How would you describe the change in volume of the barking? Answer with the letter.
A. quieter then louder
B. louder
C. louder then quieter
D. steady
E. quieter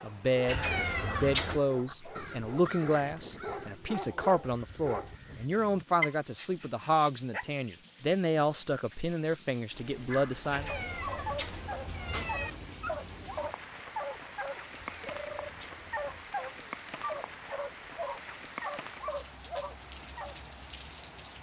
B.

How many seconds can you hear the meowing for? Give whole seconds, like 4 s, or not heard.
5 s.